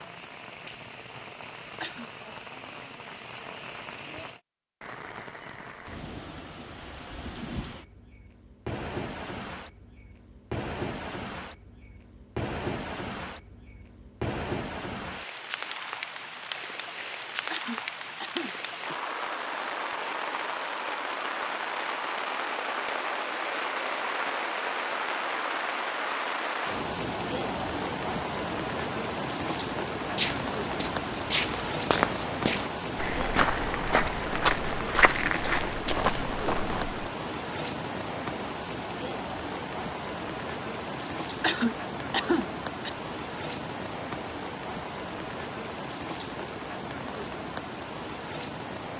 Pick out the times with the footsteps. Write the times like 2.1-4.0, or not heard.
30.1-37.1.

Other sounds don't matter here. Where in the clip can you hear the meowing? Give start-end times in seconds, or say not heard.
not heard.